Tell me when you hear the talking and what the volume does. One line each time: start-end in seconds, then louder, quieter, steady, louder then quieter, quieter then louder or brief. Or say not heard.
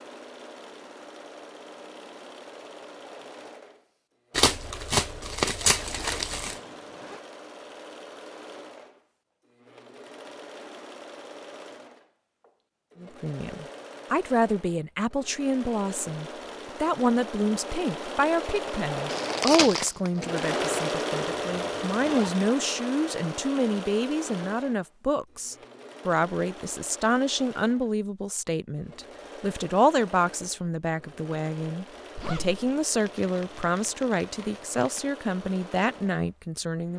13.0-36.9 steady.